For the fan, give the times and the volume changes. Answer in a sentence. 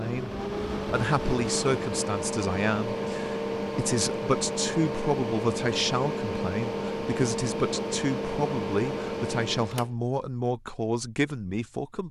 The fan can be heard from 0.0 to 9.9 s, at a steady volume.